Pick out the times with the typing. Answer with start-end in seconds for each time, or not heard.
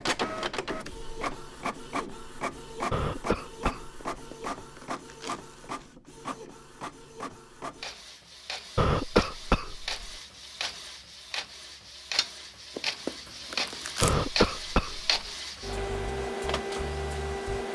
not heard.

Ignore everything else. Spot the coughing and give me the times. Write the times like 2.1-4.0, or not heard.
2.9-4.0, 8.8-10.0, 14.0-15.2.